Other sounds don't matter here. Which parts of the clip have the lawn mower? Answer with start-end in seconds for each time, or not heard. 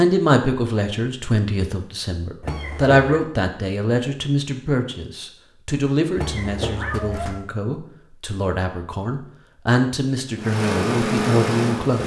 10.3-12.0.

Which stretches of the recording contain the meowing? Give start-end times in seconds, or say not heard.
2.4-3.2, 6.2-7.5.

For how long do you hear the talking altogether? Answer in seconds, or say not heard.
12 s.